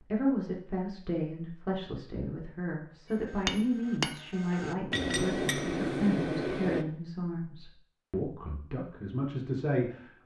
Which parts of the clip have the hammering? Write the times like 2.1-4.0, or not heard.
3.1-6.8.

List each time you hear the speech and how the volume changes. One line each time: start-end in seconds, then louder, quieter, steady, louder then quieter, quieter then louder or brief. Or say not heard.
0.0-10.2 steady.